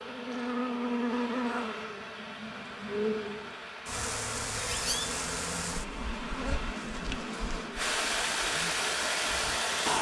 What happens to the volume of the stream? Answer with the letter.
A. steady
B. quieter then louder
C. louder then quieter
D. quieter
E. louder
E.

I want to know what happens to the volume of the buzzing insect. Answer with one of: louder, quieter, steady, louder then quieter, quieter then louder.
quieter.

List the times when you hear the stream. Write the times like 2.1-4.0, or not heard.
0.0-9.9.